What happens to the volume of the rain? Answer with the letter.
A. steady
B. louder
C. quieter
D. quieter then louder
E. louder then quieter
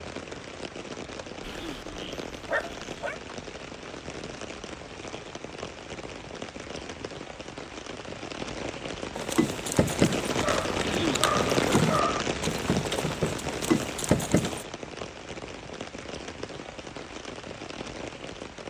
E.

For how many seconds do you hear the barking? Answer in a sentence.
The barking can be heard for 4 seconds in total.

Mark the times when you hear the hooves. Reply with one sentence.
You can hear the hooves from 9.2 to 14.7 s.